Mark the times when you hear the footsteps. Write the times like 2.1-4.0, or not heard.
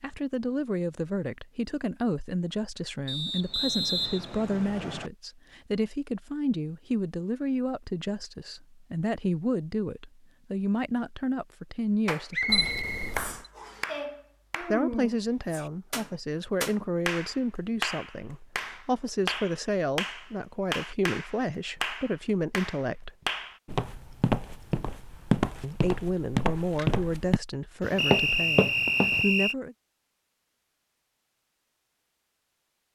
23.6-29.2.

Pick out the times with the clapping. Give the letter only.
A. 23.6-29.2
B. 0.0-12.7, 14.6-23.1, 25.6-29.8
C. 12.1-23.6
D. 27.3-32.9
C.